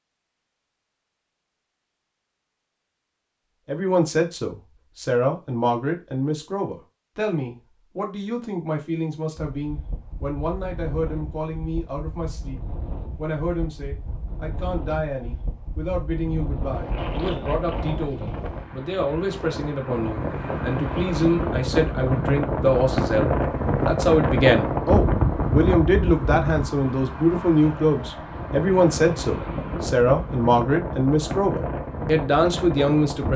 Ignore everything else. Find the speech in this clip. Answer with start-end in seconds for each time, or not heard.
3.6-33.3.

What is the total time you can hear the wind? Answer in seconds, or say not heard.
24 s.